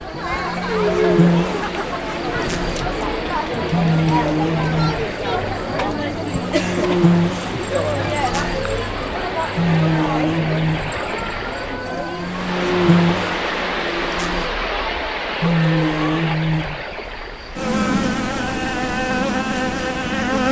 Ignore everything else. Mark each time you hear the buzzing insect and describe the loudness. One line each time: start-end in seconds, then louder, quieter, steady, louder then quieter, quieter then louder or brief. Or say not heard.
0.2-20.4 steady.